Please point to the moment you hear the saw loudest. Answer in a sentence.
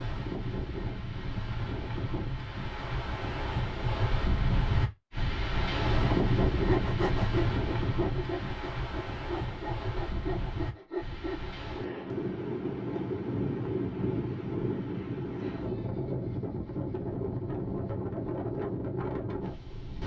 The volume of the saw peaks at 7 seconds.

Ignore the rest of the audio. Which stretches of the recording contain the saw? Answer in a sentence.
You can hear the saw from 6.0 to 11.6 s.